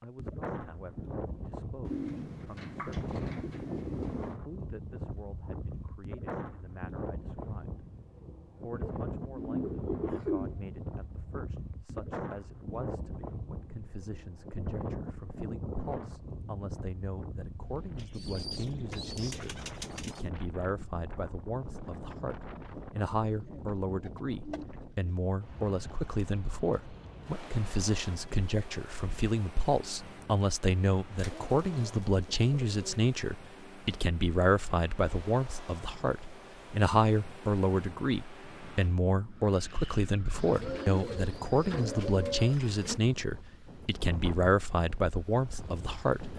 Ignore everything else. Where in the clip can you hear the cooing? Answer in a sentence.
You can hear the cooing from 1.9 to 4.4 s, from 8.8 to 10.6 s, from 17.9 to 20.2 s, from 23.4 to 25.1 s, from 31.1 to 33.0 s and from 40.4 to 43.0 s.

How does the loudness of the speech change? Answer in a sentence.
The volume of the speech goes up.